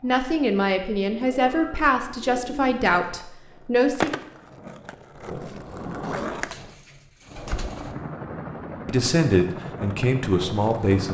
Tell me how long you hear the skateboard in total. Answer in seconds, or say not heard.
5 s.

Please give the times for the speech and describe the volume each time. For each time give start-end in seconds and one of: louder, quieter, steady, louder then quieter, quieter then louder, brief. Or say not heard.
0.0-4.2 steady
8.8-11.0 brief.